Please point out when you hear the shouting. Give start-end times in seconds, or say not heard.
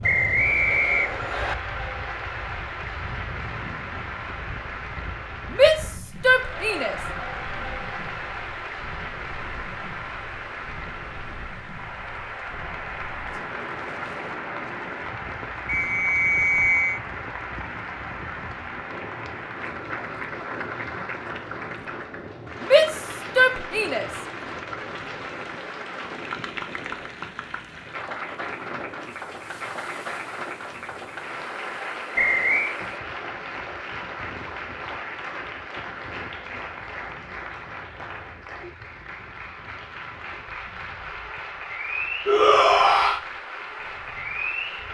5.5-7.0, 22.6-24.1, 42.2-43.2.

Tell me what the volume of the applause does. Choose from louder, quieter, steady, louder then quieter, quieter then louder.
steady.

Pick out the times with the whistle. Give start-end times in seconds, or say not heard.
0.0-1.6, 15.7-17.0, 32.1-32.8.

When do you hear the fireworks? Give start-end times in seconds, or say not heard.
not heard.